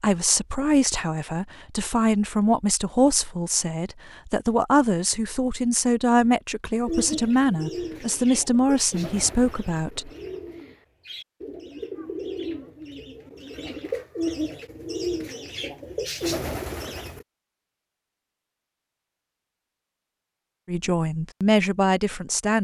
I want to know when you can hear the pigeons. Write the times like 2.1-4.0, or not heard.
6.8-17.2.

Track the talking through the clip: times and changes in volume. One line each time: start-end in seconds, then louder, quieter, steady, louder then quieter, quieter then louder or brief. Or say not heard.
0.0-10.1 steady
20.6-22.5 brief.